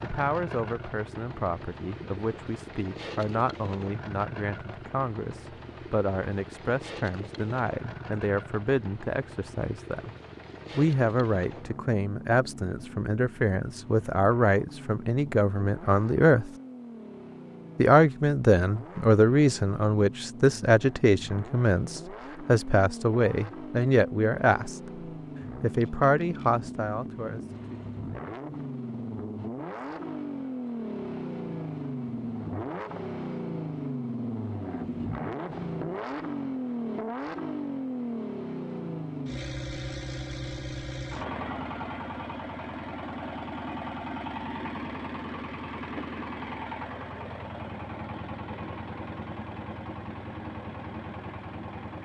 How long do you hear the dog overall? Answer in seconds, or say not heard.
not heard.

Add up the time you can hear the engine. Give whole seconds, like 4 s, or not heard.
52 s.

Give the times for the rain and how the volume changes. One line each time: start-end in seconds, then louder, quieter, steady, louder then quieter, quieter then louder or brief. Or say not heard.
not heard.